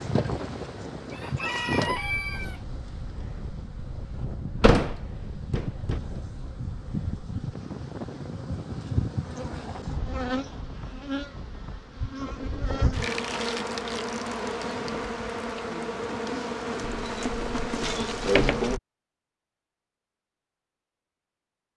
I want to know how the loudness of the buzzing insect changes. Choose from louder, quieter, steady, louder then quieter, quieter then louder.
louder.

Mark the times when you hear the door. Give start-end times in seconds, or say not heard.
4.6-6.0, 16.8-18.8.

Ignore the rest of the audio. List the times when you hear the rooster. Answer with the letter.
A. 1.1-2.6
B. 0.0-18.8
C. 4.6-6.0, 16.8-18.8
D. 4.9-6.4
A.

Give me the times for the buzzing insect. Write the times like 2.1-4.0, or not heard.
0.0-18.8.